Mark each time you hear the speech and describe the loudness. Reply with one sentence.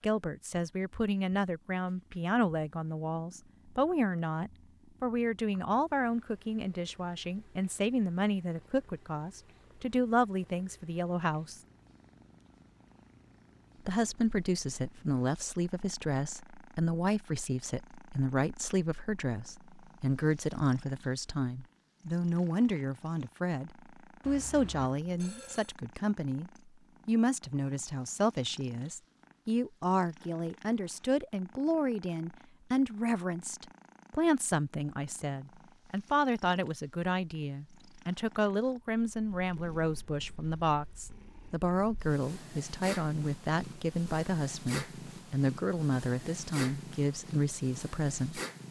You can hear the speech from 0.0 to 11.6 s, at a steady volume; and from 13.8 to 48.4 s, at a steady volume.